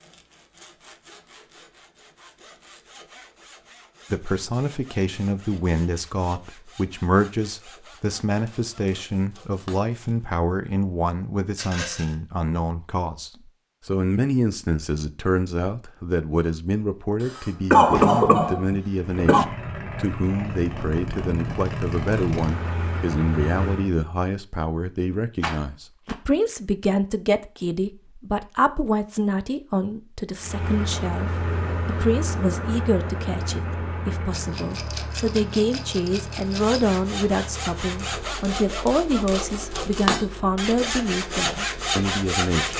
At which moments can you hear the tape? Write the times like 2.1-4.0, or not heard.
not heard.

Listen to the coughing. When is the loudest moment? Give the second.
18 s.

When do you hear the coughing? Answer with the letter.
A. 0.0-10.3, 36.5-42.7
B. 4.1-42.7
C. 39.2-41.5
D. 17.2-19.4
D.